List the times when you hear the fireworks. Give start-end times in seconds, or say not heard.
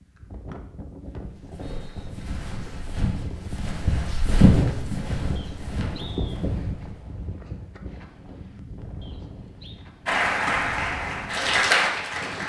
not heard.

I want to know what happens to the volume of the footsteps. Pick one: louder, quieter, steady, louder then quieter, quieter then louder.
louder then quieter.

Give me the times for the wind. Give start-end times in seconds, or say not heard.
0.0-12.4.